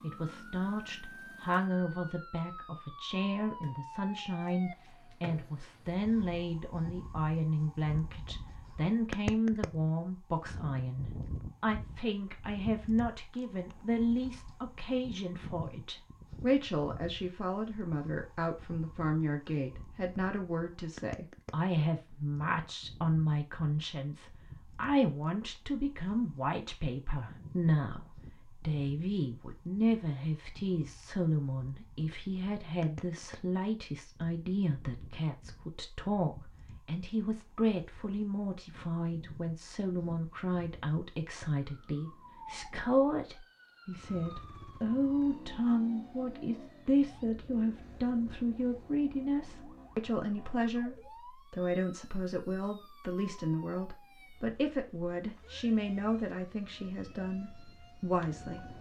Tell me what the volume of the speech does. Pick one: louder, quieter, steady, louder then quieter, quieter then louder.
steady.